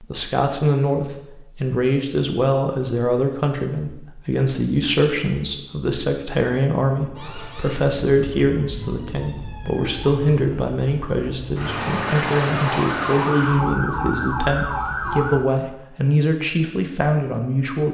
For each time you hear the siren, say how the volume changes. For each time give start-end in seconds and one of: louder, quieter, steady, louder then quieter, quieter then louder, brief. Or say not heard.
7.2-15.3 louder.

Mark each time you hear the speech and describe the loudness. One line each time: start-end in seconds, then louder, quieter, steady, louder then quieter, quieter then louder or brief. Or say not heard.
0.0-17.8 steady.